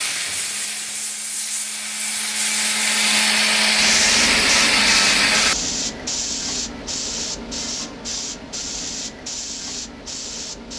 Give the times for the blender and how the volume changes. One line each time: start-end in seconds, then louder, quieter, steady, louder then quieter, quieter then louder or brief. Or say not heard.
0.0-5.5 louder.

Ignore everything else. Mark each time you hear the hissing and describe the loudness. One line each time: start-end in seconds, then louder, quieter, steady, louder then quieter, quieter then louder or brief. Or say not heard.
0.0-10.7 louder then quieter.